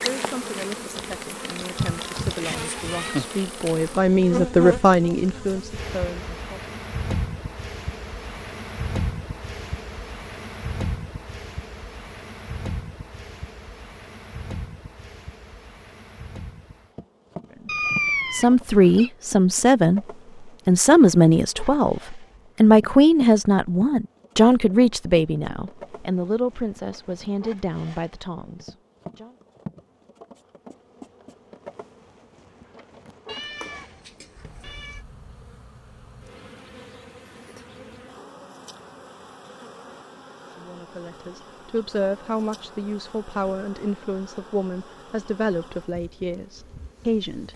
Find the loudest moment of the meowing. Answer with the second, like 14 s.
18 s.